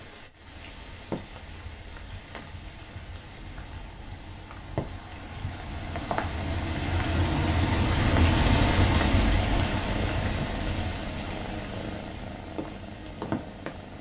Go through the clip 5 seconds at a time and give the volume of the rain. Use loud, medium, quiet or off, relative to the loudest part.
quiet, loud, medium.